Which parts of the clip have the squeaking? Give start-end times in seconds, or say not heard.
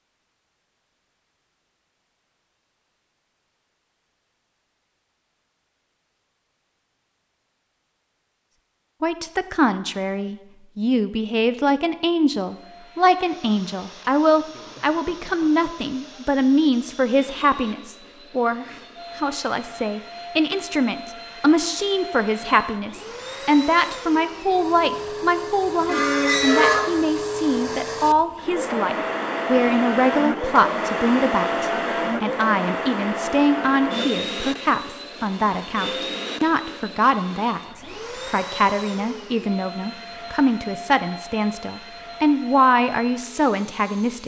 25.9-26.9.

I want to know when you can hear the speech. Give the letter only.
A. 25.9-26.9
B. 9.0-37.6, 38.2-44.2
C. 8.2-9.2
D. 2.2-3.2
B.